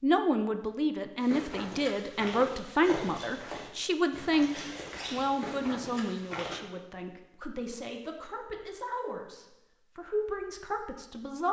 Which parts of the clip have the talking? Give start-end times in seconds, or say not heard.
0.0-11.4.